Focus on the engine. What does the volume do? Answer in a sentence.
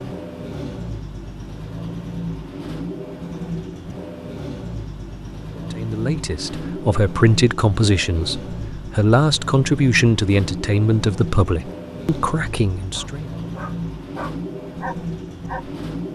The loudness of the engine stays about the same.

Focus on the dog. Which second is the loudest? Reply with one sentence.
The volume of the dog peaks at 15 seconds.